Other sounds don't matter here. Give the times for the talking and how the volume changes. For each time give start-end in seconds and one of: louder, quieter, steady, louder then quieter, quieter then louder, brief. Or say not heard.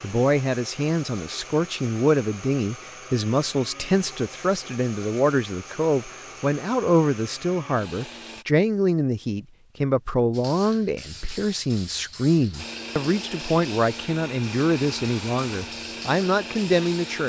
0.0-17.2 steady.